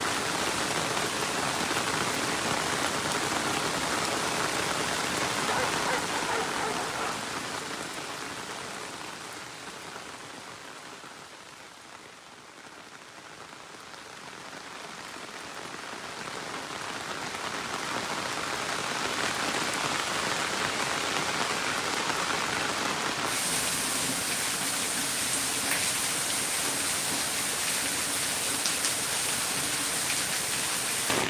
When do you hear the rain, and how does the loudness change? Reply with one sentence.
The rain can be heard from 0.0 to 31.2 s, getting quieter then louder.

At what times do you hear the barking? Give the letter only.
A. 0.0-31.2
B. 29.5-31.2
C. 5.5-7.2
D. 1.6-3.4
C.